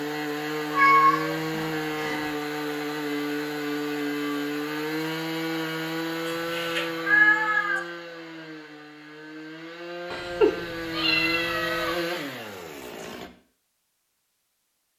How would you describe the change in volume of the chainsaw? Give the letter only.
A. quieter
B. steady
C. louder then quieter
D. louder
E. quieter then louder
E.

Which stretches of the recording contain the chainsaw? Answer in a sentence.
You can hear the chainsaw from 0.0 to 13.3 s.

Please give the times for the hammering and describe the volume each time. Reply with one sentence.
The hammering can't be heard in this clip.